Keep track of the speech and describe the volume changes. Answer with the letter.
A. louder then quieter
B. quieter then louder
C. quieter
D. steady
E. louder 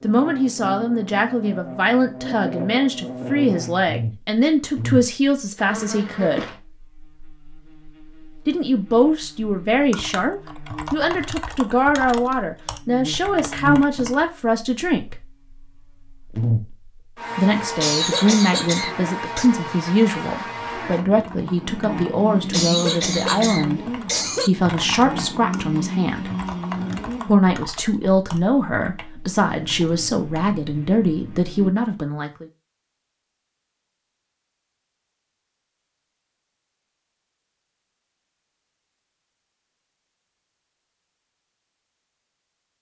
D.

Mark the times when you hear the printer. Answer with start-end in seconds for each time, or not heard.
not heard.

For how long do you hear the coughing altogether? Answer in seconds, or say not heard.
4 s.